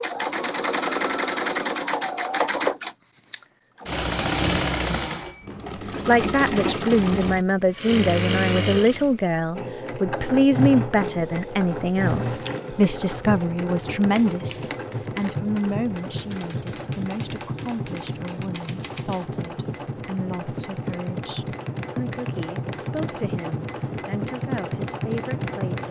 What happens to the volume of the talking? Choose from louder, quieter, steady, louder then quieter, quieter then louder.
quieter.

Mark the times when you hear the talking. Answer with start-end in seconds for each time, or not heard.
6.0-25.8.